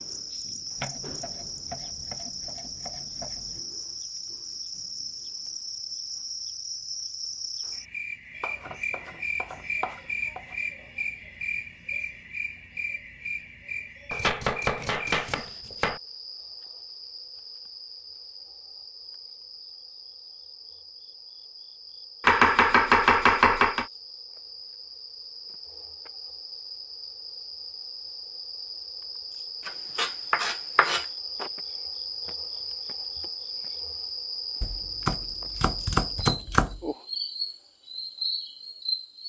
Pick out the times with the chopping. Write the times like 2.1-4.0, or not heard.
0.8-3.6, 8.4-10.6, 14.1-16.0, 22.2-23.9, 29.6-31.1, 34.6-36.8.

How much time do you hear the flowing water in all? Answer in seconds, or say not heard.
not heard.